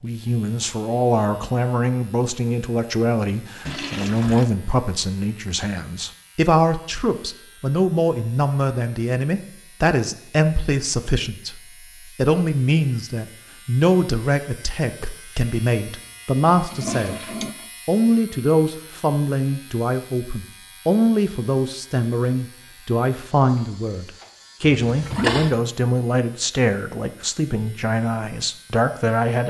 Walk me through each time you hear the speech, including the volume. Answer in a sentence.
You can hear the speech from 0.0 to 29.4 s, at a steady volume.